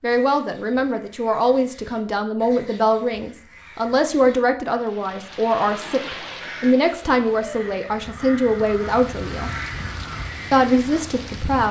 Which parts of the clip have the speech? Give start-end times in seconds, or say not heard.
0.0-9.5, 10.5-11.6.